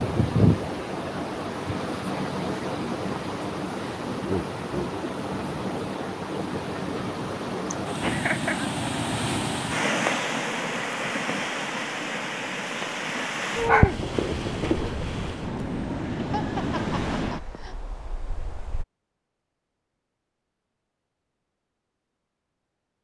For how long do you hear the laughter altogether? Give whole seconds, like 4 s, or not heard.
3 s.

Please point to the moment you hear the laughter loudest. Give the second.
8 s.